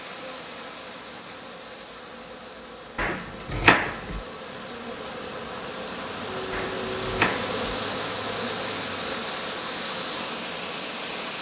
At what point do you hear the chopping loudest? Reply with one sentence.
The volume of the chopping peaks at 4 seconds.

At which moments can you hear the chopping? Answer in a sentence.
The chopping can be heard from 3.0 to 4.2 s and from 6.5 to 7.5 s.